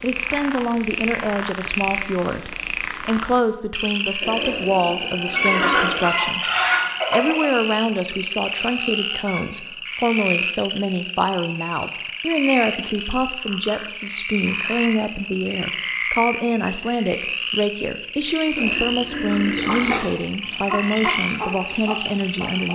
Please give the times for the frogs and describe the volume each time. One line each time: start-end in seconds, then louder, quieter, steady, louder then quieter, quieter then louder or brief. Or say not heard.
0.0-22.7 steady.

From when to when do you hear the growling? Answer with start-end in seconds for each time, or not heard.
4.2-6.2, 18.6-20.0.